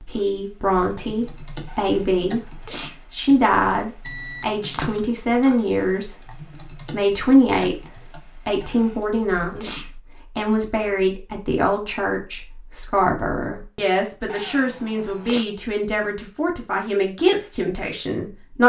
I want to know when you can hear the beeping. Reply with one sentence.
You can hear the beeping from 4.0 to 5.1 s.